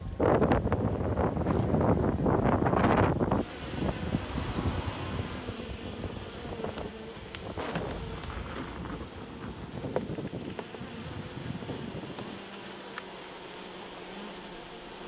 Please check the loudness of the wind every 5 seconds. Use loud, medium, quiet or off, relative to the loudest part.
loud, quiet, quiet.